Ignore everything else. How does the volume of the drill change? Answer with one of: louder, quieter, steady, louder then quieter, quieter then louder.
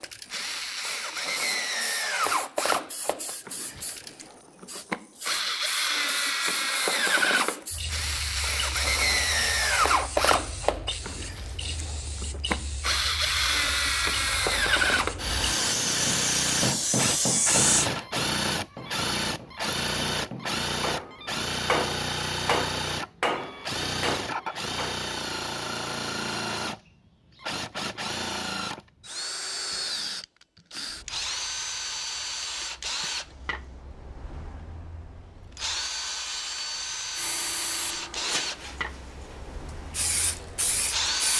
quieter.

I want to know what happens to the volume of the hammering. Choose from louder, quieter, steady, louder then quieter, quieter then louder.
quieter then louder.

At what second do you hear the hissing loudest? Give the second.
17 s.